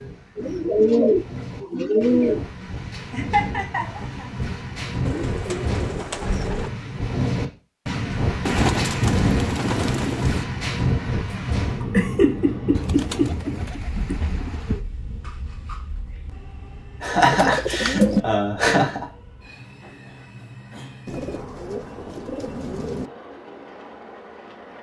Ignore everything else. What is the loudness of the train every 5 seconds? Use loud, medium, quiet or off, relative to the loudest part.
medium, loud, loud, quiet, quiet.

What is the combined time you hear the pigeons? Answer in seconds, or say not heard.
11 s.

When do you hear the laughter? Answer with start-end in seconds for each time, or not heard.
3.1-4.3, 11.8-14.2, 17.0-19.1.